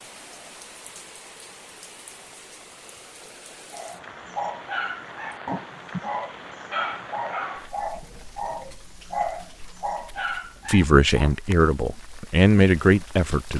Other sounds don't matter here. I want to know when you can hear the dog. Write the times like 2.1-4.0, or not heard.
3.7-11.3.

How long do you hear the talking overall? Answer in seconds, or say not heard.
3 s.